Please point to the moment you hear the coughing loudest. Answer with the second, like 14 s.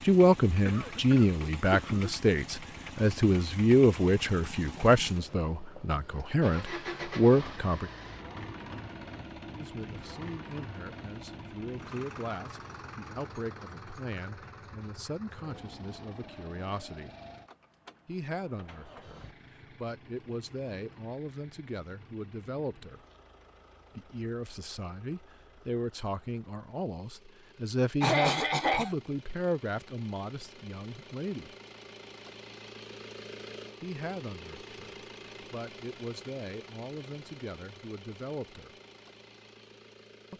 28 s.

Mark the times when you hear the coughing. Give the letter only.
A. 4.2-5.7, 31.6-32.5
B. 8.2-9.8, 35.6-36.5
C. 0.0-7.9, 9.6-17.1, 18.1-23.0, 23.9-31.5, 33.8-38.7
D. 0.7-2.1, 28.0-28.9
D.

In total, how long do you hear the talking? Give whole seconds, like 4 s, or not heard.
33 s.